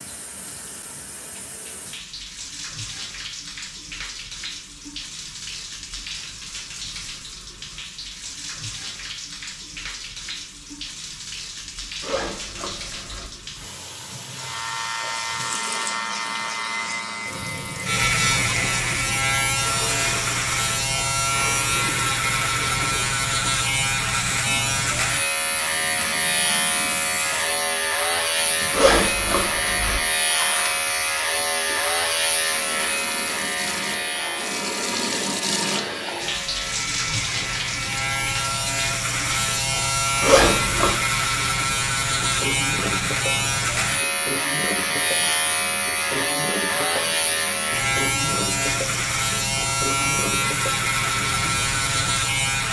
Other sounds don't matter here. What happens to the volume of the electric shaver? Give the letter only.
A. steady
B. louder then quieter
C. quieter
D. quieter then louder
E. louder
A.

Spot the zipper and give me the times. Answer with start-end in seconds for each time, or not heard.
12.0-13.3, 28.7-30.0, 40.2-41.0.